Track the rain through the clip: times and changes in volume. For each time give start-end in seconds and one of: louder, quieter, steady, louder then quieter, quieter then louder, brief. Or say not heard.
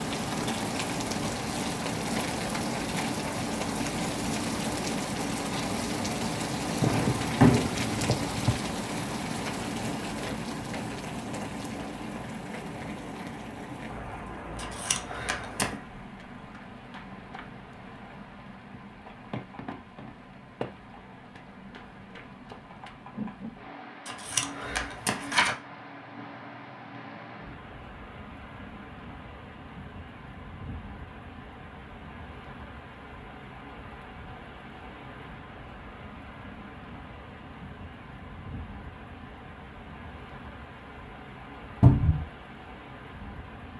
0.0-43.7 quieter.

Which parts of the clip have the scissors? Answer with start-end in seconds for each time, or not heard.
14.6-15.8, 24.1-25.6.